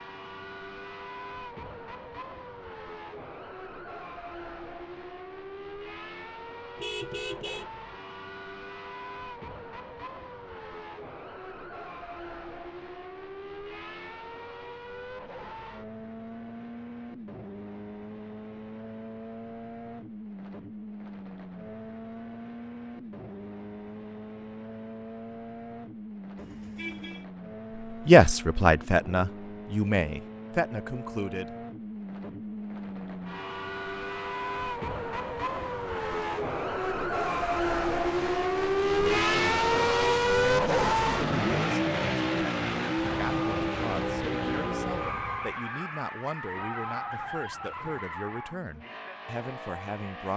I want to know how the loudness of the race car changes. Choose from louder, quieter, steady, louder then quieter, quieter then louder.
louder.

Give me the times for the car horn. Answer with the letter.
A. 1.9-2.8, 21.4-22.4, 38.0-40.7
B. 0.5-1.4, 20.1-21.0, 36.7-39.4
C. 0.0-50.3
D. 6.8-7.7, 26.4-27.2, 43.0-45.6
D.